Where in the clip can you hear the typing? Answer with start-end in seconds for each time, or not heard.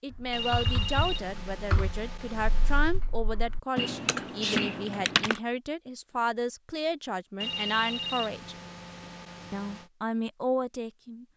0.1-5.4.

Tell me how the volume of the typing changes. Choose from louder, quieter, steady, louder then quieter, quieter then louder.
quieter then louder.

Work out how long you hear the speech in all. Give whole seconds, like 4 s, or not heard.
10 s.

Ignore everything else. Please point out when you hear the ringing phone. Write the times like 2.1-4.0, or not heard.
0.3-3.0, 7.4-9.9.